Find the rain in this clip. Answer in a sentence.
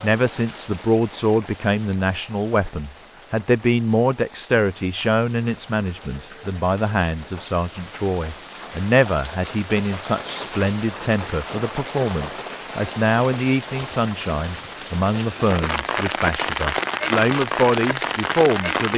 The rain can be heard from 0.0 to 18.9 s.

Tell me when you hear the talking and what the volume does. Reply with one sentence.
You can hear the talking from 0.0 to 18.9 s, at a steady volume.